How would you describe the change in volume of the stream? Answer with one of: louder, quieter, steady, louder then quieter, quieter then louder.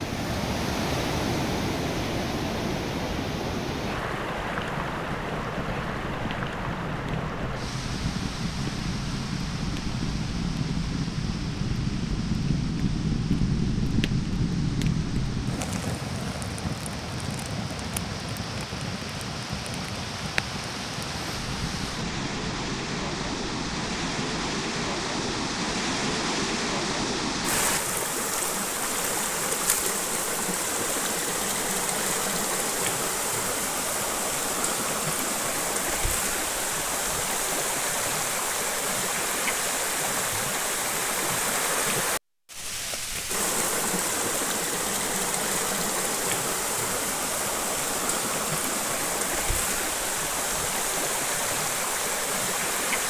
quieter then louder.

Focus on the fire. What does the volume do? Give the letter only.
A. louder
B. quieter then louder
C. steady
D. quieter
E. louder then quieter
E.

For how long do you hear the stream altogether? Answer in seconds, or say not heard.
53 s.